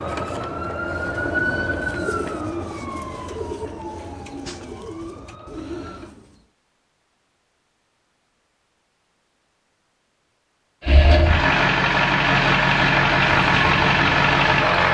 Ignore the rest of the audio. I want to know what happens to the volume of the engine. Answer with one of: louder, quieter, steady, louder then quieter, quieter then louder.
steady.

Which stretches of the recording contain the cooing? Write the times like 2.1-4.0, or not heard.
1.1-6.5.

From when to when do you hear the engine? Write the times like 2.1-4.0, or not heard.
10.8-14.8.